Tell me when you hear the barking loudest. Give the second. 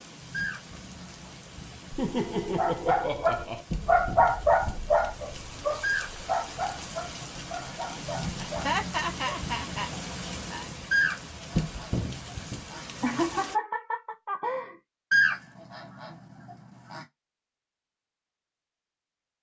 4 s.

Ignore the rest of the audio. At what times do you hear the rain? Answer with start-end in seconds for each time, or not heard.
0.0-13.6.